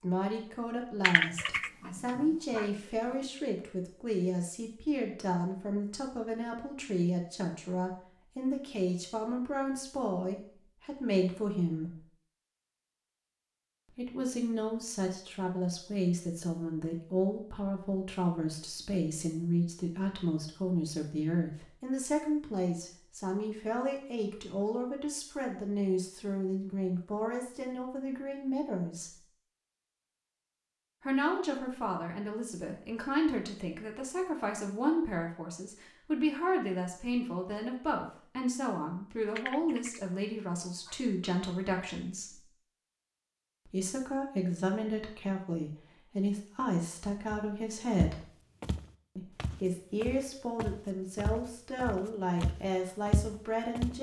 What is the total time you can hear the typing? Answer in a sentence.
You can hear the typing for 4 seconds altogether.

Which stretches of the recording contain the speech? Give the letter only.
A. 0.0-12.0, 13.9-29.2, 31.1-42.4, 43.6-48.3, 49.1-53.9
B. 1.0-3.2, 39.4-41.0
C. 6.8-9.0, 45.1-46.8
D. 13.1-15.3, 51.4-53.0
A.